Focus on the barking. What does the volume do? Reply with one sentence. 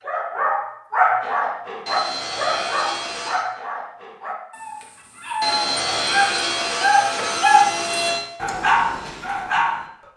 The volume of the barking goes down, then up.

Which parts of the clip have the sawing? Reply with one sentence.
You can hear the sawing from 1.9 to 3.5 s and from 5.4 to 8.2 s.